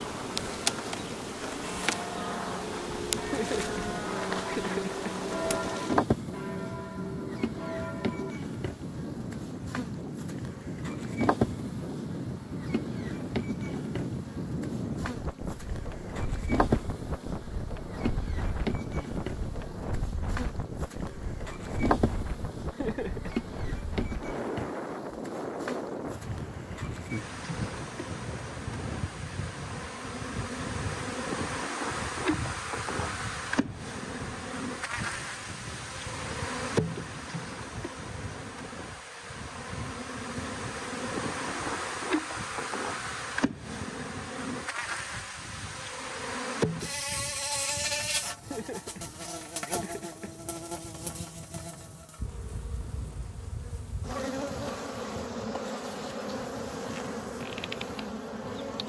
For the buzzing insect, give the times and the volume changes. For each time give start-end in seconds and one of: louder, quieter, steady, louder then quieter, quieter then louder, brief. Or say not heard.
0.0-58.8 steady.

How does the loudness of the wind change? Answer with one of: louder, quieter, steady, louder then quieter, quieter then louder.
quieter.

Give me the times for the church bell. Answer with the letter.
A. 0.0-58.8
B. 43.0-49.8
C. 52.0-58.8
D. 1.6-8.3
D.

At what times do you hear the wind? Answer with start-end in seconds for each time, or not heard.
0.0-58.8.